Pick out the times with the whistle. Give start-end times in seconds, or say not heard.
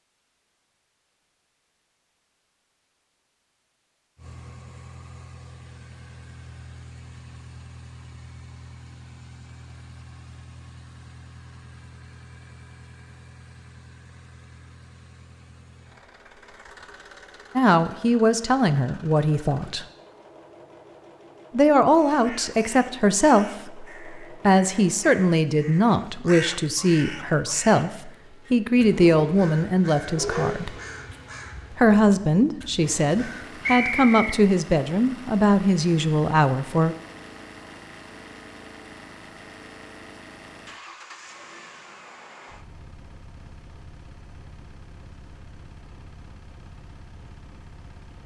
33.6-34.5.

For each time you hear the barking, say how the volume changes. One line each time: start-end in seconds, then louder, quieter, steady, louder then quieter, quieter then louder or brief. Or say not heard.
not heard.